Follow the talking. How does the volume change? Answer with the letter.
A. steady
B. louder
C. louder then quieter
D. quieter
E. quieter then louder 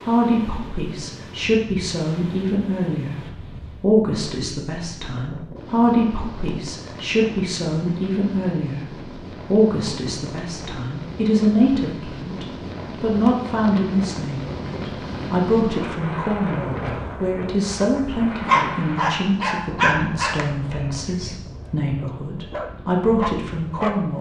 A.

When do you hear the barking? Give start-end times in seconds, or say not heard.
18.4-24.1.